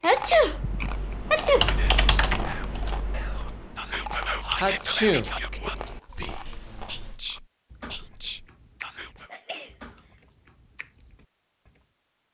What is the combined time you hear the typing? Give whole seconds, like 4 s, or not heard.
7 s.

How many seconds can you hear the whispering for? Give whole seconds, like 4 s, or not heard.
8 s.